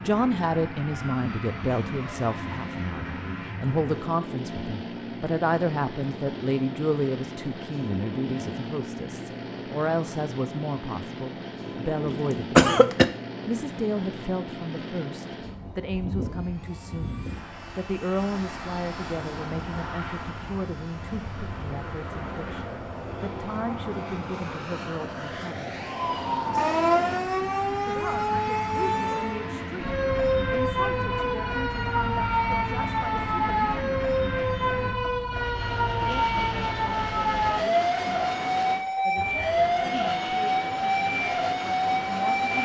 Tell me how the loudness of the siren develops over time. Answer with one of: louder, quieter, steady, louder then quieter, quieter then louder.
steady.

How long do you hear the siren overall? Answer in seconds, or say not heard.
17 s.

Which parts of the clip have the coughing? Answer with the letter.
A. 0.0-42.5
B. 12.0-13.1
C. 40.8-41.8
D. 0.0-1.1
B.